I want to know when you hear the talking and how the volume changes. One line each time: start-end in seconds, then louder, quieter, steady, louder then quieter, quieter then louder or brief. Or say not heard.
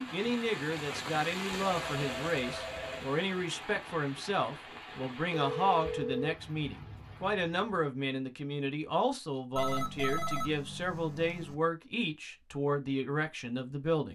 0.1-14.1 steady.